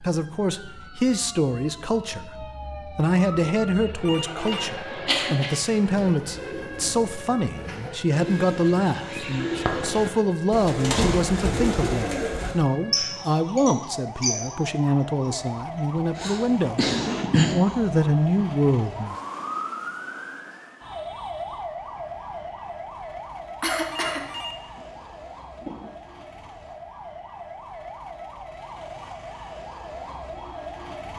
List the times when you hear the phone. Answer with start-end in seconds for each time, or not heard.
4.0-5.0, 23.9-25.9.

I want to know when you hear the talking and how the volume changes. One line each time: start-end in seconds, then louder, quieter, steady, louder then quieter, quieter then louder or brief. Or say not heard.
0.0-19.1 steady.